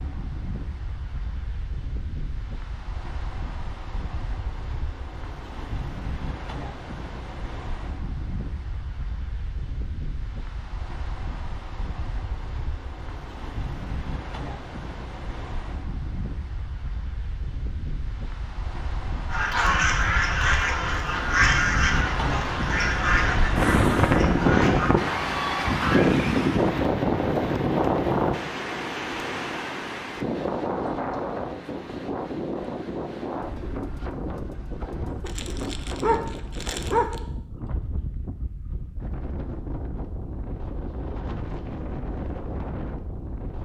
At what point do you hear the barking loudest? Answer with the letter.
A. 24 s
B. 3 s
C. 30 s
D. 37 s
D.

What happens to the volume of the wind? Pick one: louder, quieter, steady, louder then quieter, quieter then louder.
louder then quieter.